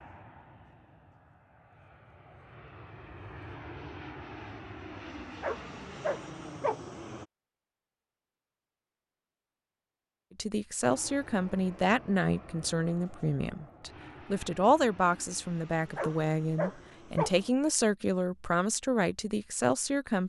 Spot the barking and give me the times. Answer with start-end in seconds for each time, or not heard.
5.4-6.8, 15.9-17.4.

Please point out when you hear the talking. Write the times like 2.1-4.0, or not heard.
10.3-20.2.